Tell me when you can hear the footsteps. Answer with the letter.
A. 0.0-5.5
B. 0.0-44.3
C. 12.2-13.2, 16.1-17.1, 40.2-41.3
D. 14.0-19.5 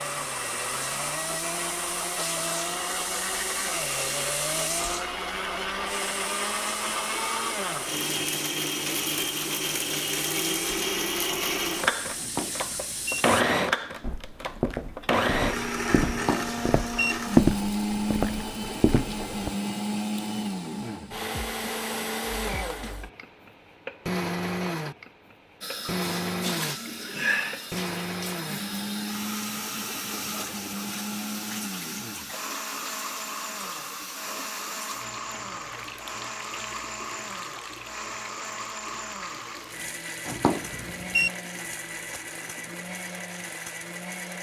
D.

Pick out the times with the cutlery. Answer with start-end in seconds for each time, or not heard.
not heard.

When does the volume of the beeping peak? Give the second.
41 s.